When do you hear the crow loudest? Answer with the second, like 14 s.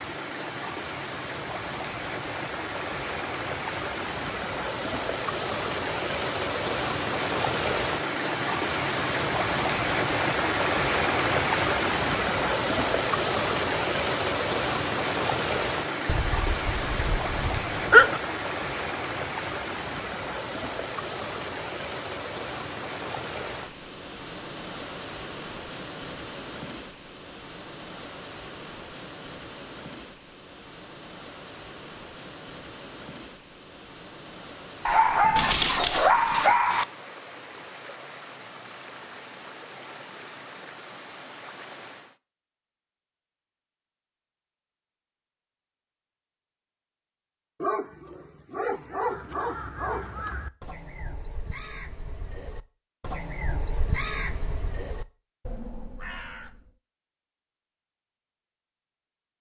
54 s.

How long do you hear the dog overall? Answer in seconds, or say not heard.
7 s.